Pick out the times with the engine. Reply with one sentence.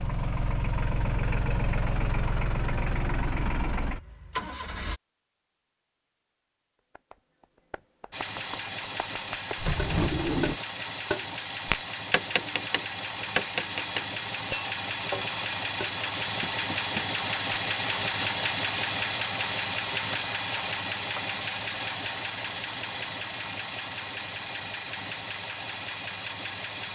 You can hear the engine from 0.0 to 5.0 s and from 8.1 to 26.9 s.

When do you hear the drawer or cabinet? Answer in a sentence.
You can hear the drawer or cabinet from 9.6 to 10.6 s.